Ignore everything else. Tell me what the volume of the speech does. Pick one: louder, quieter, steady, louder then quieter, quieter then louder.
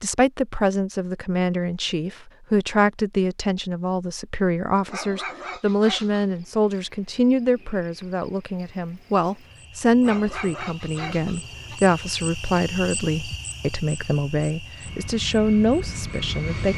steady.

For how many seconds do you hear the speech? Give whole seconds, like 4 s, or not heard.
17 s.